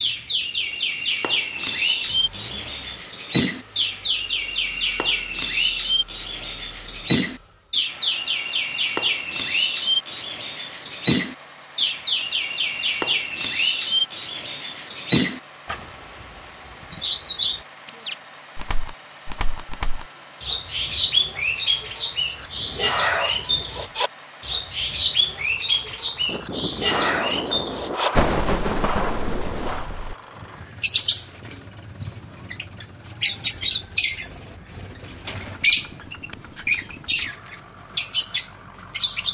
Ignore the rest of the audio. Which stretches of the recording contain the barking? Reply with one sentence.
You can't hear the barking here.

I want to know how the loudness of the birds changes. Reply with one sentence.
The volume of the birds stays about the same.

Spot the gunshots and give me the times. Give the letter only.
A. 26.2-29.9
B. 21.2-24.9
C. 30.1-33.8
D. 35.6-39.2
A.